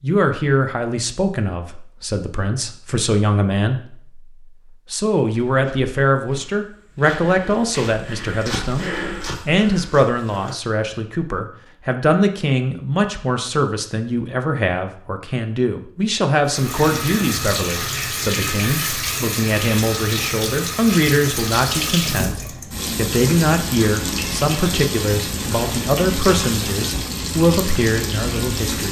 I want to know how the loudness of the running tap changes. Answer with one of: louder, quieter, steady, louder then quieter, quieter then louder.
steady.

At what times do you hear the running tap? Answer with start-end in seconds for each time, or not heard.
16.4-28.8.